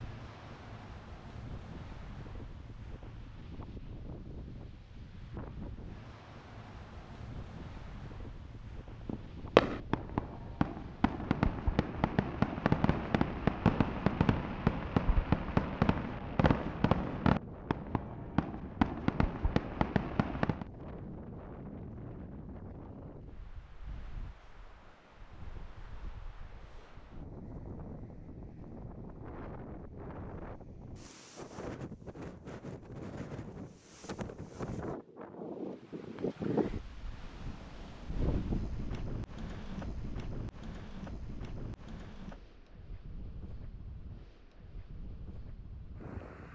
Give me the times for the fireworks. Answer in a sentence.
The fireworks can be heard from 9.1 to 20.7 s.